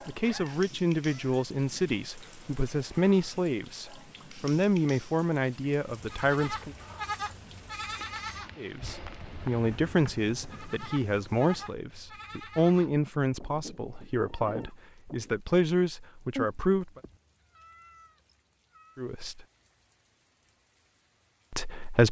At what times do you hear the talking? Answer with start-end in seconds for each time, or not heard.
0.1-6.8, 8.6-17.0, 18.9-19.4, 21.5-22.0.